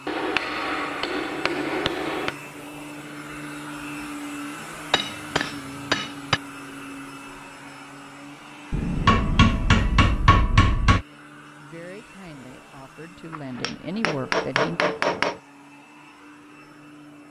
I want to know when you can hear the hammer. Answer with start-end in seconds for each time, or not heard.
0.1-2.4, 4.9-6.4, 8.7-11.1, 13.3-15.3.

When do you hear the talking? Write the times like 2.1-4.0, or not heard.
11.6-14.8.